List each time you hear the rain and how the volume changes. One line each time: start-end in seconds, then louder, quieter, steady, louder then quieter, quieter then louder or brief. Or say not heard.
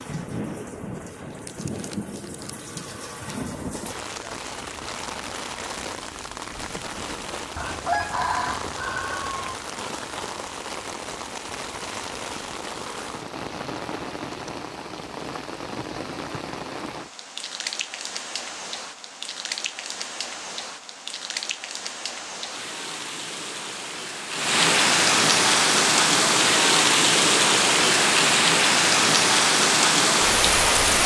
0.0-31.0 louder.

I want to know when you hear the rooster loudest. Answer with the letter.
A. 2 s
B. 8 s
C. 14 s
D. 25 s
B.